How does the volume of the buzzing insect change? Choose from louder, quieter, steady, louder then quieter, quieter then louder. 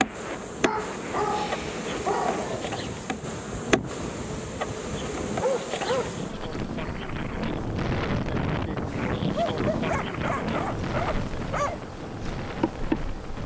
quieter then louder.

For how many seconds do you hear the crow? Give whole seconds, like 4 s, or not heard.
not heard.